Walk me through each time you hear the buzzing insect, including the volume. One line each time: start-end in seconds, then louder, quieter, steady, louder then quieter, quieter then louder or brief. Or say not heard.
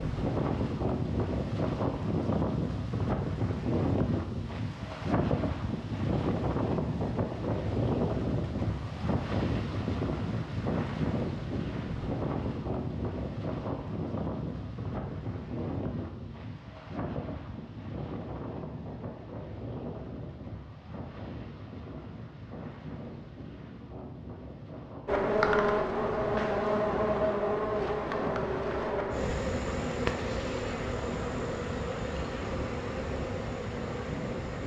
25.1-34.6 quieter.